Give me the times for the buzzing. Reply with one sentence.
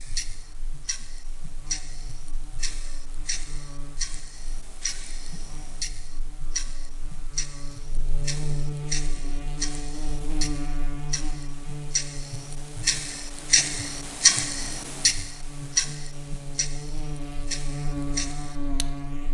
The buzzing can be heard from 0.0 to 19.2 s.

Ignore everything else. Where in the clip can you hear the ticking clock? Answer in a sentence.
The ticking clock can be heard from 0.0 to 19.1 s.